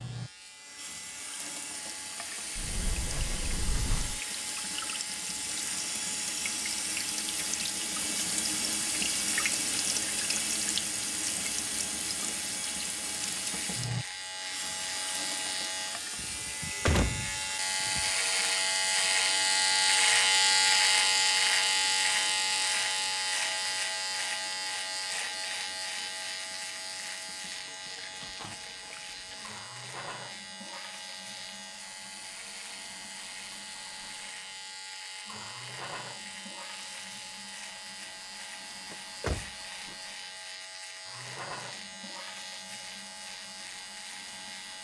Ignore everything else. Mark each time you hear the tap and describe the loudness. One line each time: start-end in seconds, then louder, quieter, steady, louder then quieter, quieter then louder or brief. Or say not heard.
0.0-44.8 quieter.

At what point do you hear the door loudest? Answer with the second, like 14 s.
17 s.